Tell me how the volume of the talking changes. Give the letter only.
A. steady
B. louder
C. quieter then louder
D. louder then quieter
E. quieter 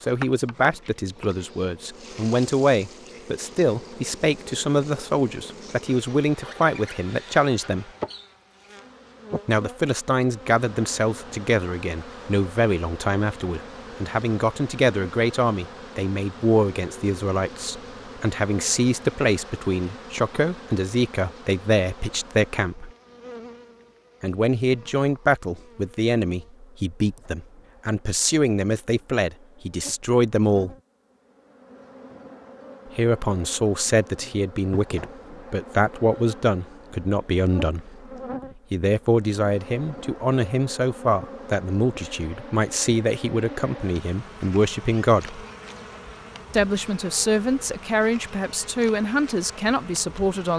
A.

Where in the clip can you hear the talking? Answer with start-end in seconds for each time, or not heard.
0.0-7.9, 9.4-22.9, 24.2-30.8, 33.0-38.0, 38.7-45.4, 46.5-50.5.